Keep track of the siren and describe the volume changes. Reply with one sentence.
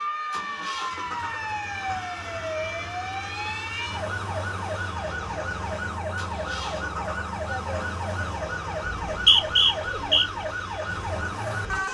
The volume of the siren stays about the same.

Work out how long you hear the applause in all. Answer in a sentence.
You can't hear the applause here.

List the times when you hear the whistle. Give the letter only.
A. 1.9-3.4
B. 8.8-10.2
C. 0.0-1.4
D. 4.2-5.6
B.